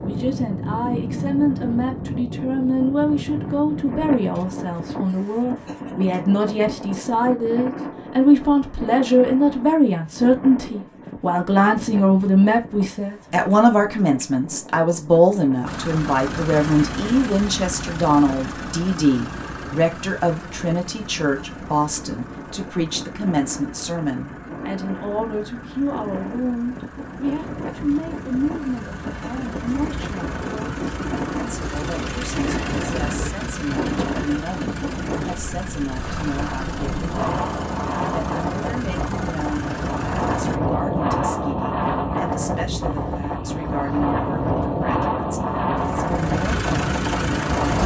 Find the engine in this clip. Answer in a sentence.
The engine can be heard from 15.7 to 40.6 s and from 45.8 to 47.8 s.